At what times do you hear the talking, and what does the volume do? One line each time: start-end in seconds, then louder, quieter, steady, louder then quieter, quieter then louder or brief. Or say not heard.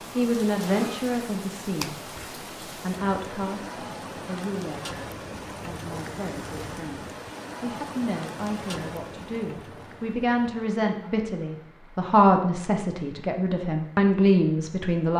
0.1-5.0 quieter
5.6-15.1 louder.